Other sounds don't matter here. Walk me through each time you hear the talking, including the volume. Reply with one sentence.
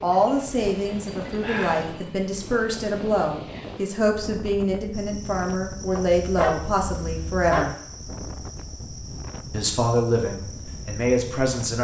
You can hear the talking from 0.0 to 7.7 s, at a steady volume; and briefly from 9.5 to 11.7 s.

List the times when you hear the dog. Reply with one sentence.
You can hear the dog from 0.1 to 2.1 s and from 6.0 to 7.8 s.